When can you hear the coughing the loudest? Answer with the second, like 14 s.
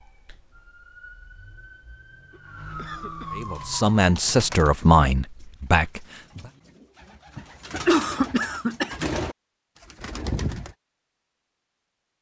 8 s.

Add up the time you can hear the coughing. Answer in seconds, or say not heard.
3 s.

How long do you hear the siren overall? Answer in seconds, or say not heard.
4 s.